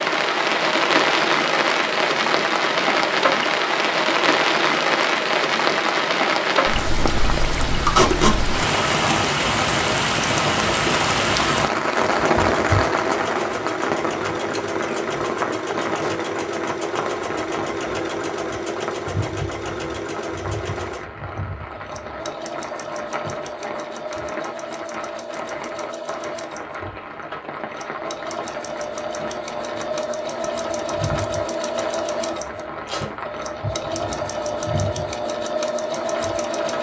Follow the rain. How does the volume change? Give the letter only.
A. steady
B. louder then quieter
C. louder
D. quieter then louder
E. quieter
E.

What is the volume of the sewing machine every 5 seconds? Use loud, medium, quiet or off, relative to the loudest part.
off, off, loud, loud, medium, medium, loud, loud.